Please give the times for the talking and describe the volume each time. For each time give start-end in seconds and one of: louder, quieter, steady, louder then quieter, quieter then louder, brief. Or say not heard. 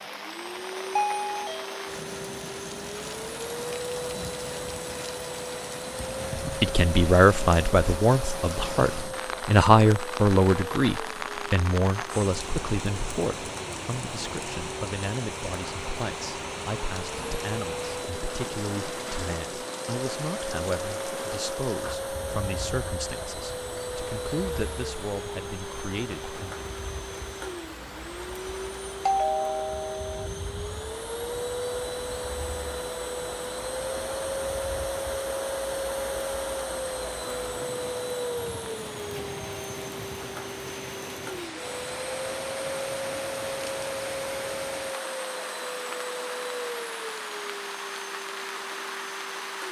6.6-26.6 quieter.